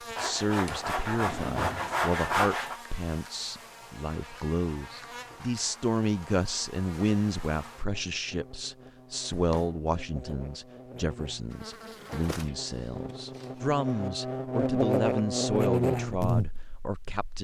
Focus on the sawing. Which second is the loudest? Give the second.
2 s.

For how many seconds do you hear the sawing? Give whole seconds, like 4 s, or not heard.
3 s.